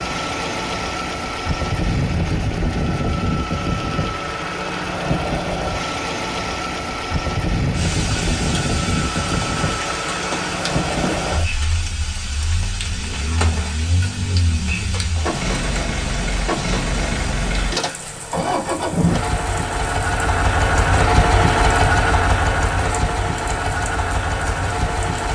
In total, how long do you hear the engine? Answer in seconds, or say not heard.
25 s.